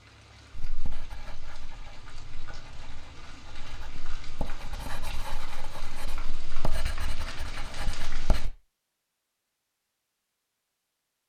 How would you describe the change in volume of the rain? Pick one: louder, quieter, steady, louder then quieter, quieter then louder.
louder.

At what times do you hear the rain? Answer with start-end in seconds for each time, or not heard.
0.0-8.5.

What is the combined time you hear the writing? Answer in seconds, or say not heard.
8 s.